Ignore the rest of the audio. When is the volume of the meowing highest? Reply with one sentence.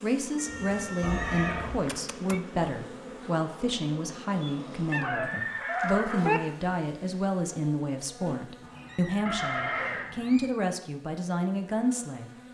The loudest moment of the meowing is at 6 seconds.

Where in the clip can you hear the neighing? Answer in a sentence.
The neighing can be heard from 1.0 to 1.8 s, from 5.0 to 6.4 s and from 9.2 to 10.1 s.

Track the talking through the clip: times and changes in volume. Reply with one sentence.
You can hear the talking from 0.0 to 12.3 s, at a steady volume.